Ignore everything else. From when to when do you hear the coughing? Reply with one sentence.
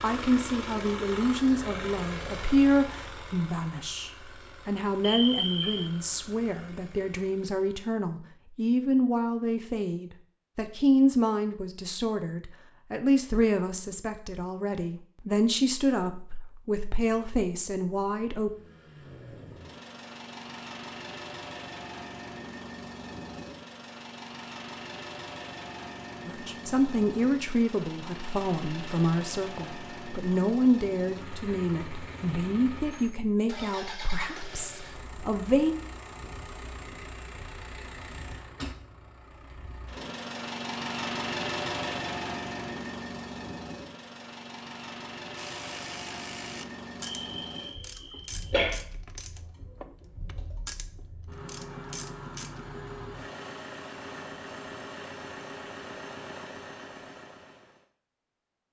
You can hear the coughing from 5.0 to 5.9 s and from 47.0 to 48.8 s.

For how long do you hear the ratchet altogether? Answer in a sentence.
You can hear the ratchet for 7 seconds altogether.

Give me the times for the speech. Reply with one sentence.
You can hear the speech from 0.0 to 18.5 s and from 26.2 to 35.8 s.